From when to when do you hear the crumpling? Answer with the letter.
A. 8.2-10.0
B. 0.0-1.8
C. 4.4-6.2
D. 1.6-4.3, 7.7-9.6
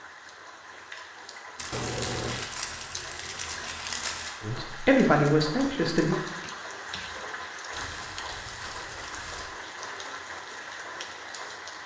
D.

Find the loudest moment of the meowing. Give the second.
2 s.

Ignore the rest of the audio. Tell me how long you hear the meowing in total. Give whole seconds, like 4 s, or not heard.
2 s.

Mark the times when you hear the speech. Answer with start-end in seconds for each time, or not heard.
4.4-6.2.